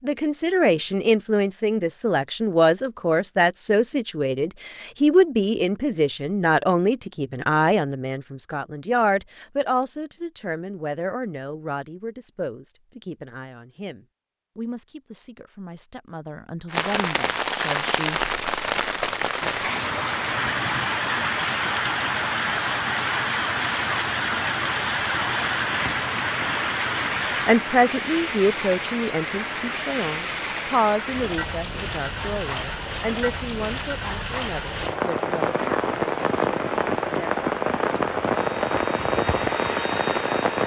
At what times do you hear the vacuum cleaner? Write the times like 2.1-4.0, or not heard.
38.3-40.6.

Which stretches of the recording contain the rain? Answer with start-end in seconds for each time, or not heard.
16.7-40.6.